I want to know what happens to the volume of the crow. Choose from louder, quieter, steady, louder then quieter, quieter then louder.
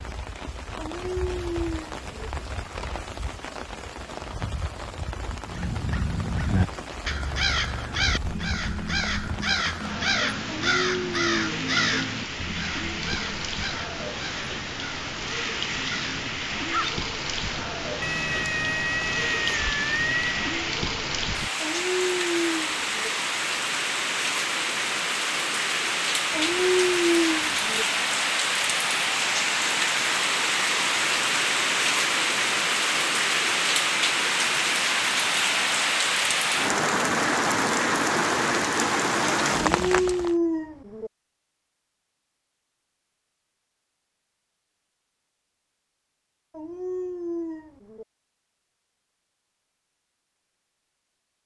quieter.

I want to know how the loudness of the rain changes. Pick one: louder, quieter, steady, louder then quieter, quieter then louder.
louder.